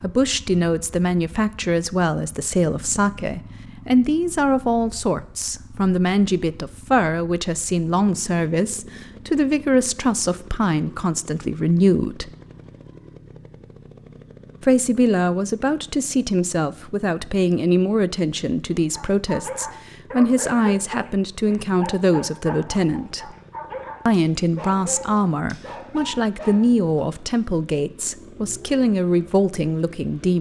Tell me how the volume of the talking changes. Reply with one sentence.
The volume of the talking stays about the same.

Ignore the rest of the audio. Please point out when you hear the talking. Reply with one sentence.
You can hear the talking from 0.0 to 12.3 s, from 14.6 to 23.4 s and from 24.1 to 30.3 s.